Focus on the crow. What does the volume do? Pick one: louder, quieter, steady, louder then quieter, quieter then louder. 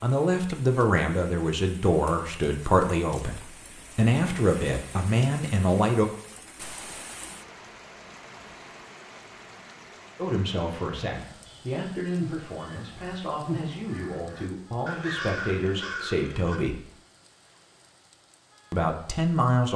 quieter then louder.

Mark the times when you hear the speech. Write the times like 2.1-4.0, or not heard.
0.0-6.1, 10.2-16.8, 18.7-19.7.